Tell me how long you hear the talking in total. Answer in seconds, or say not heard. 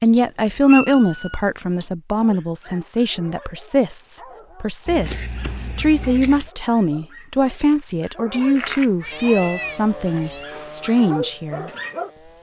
12 s.